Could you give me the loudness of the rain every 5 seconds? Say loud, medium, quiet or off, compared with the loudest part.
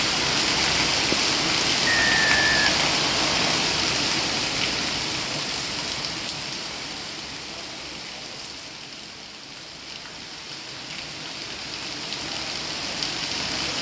loud, medium, medium.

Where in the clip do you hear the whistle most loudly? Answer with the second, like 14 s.
2 s.